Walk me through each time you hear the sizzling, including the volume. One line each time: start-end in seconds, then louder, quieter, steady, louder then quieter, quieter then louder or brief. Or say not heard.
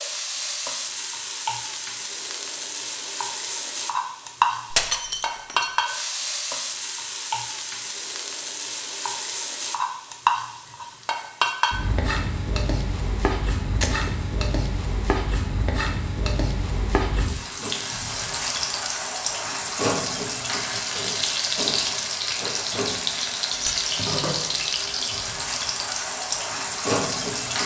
0.0-27.6 steady.